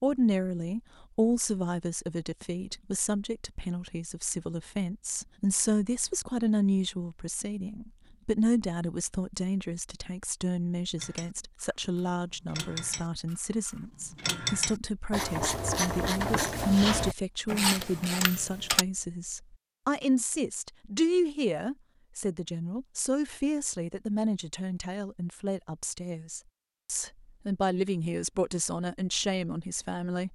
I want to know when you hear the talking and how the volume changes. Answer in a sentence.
The talking can be heard from 0.0 to 30.3 s, at a steady volume.